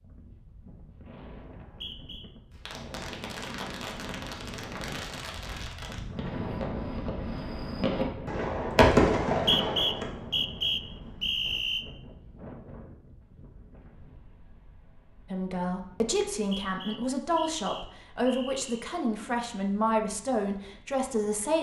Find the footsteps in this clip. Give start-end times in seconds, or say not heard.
not heard.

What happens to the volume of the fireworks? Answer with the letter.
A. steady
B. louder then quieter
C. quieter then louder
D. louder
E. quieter
D.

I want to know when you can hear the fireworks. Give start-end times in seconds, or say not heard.
2.5-10.1.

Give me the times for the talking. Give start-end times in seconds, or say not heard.
15.3-21.5.